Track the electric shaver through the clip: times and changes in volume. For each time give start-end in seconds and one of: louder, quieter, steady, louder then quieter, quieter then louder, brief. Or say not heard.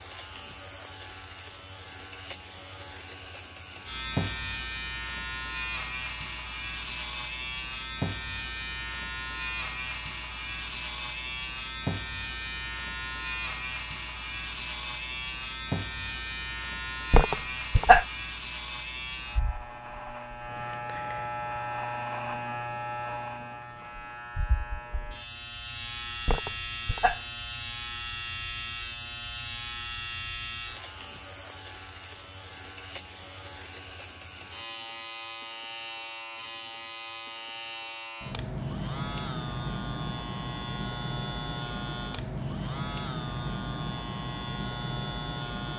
0.0-45.7 steady.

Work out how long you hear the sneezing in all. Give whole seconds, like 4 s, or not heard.
2 s.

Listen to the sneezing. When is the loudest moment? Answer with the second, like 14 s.
18 s.